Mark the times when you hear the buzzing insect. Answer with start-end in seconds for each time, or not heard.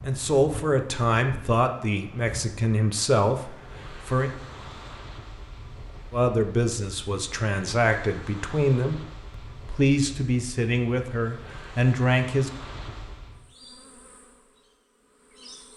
13.3-15.7.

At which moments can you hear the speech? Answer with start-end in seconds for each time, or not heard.
0.1-4.3, 6.1-12.5.